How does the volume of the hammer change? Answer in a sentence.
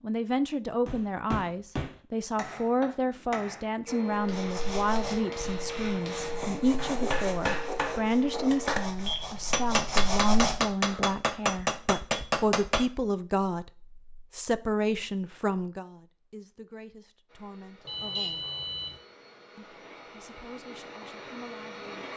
The volume of the hammer goes down, then up.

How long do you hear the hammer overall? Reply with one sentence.
You can hear the hammer for 12 seconds altogether.